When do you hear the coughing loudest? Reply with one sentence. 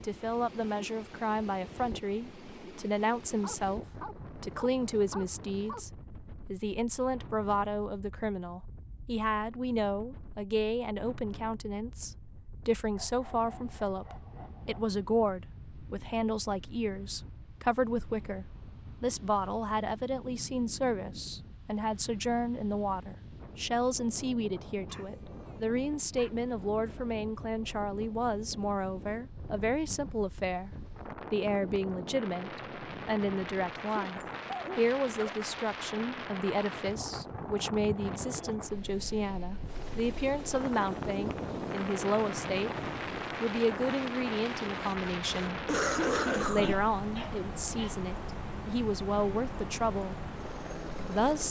The loudest moment of the coughing is at 46 seconds.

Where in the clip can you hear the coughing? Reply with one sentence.
The coughing can be heard from 44.8 to 46.8 s.